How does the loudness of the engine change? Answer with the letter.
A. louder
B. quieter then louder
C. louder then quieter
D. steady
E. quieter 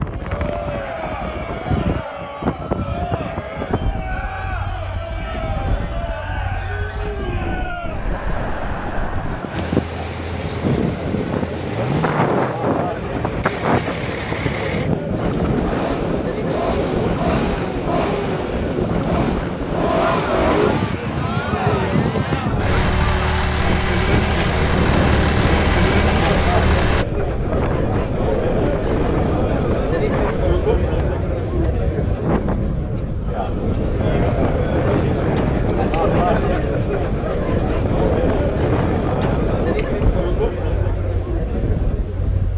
A.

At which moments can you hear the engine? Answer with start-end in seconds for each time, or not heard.
9.5-27.1.